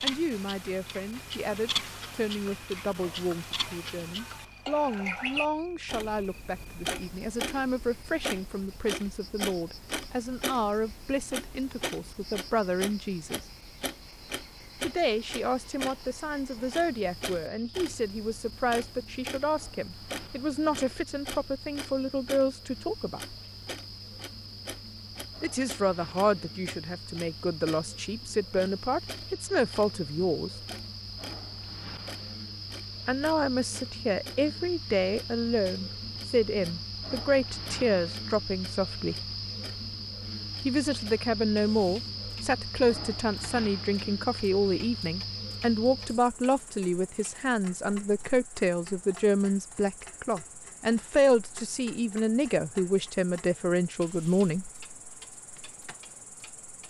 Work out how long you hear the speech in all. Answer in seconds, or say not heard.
47 s.